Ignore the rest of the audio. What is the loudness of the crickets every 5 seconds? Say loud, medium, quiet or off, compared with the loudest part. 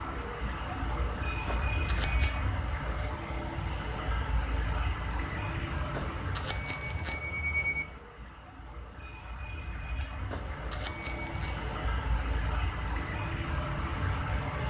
loud, medium, loud.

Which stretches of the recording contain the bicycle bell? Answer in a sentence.
The bicycle bell can be heard from 1.4 to 2.4 s, from 6.0 to 7.8 s and from 10.3 to 11.6 s.